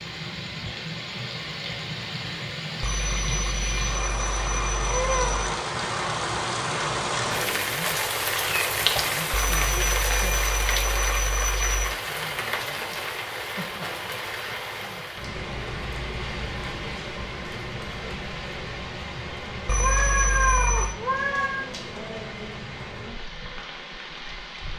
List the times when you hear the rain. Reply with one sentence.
The rain can be heard from 0.0 to 24.7 s.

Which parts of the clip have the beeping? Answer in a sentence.
The beeping can be heard from 2.8 to 5.3 s, from 9.3 to 11.9 s and from 19.6 to 20.9 s.